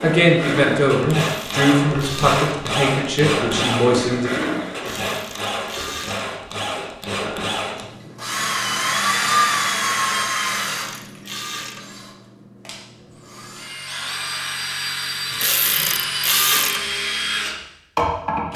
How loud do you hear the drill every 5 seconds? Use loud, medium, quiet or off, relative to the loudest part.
loud, loud, medium, loud.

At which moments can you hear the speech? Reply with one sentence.
You can hear the speech from 0.0 to 4.3 s.